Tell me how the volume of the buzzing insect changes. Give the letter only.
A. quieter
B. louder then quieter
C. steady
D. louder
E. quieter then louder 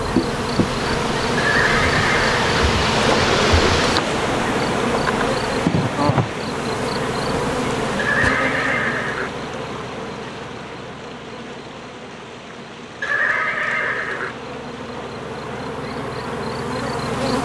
E.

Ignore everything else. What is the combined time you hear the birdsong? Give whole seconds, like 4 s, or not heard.
not heard.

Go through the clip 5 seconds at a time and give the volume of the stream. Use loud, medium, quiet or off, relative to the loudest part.
loud, medium, quiet, quiet.